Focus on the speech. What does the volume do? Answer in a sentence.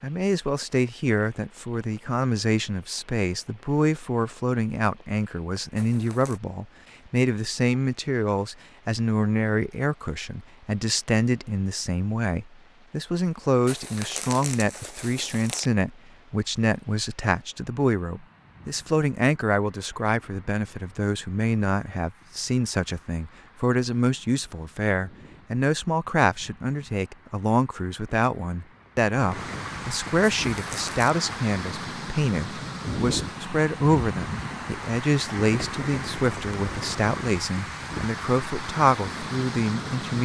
The volume of the speech stays about the same.